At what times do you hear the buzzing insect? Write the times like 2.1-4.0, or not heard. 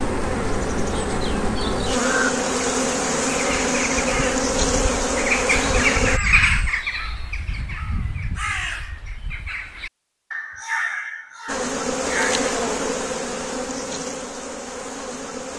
0.0-6.2, 11.4-15.5.